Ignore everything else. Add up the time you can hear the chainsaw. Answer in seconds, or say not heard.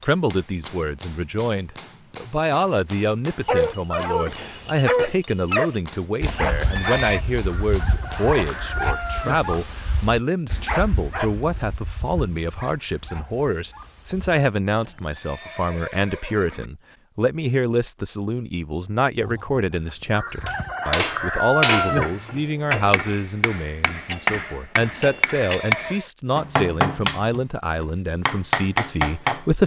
not heard.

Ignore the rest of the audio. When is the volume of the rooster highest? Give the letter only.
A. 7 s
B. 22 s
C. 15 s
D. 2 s
B.